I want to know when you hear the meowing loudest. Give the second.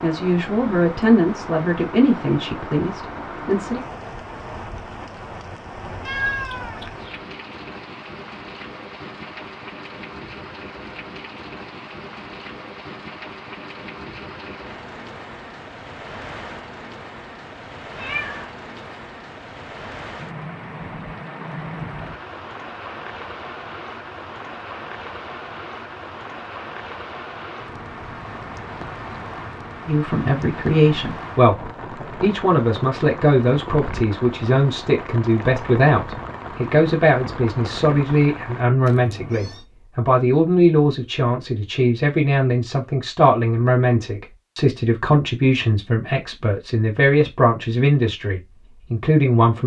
6 s.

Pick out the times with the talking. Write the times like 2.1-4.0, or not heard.
0.0-3.8, 29.9-49.6.